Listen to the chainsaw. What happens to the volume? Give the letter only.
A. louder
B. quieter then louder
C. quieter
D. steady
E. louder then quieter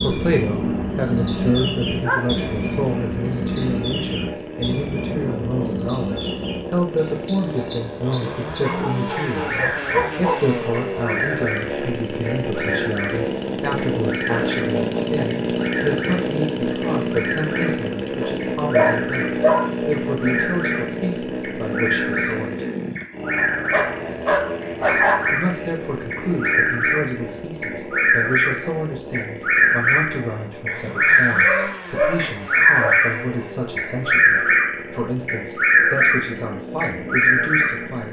E.